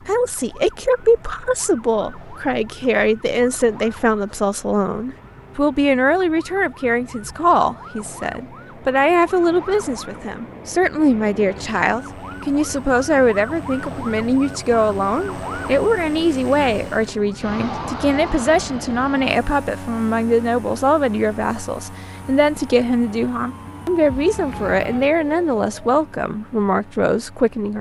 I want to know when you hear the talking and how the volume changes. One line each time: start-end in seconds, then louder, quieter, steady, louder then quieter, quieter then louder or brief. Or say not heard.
0.1-27.7 steady.